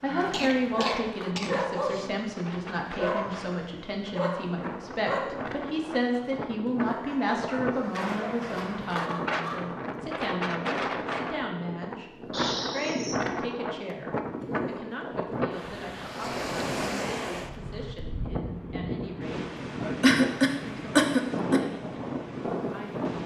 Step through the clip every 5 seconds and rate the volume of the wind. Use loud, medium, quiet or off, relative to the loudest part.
medium, loud, loud, loud, loud.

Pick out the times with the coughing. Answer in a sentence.
You can hear the coughing from 0.3 to 2.1 s, from 12.3 to 13.2 s and from 20.0 to 21.6 s.